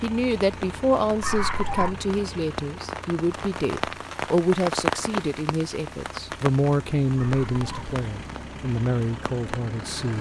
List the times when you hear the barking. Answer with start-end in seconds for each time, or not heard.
1.2-1.9, 7.2-7.9.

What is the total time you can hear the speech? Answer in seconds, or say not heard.
10 s.